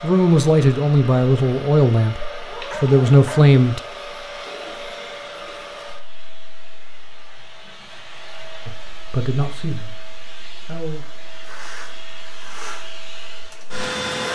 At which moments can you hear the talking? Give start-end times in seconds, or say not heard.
0.0-3.8, 8.7-11.1.